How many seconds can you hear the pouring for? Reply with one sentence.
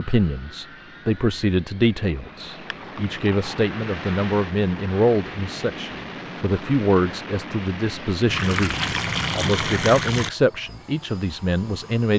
The pouring can be heard for 3 seconds in total.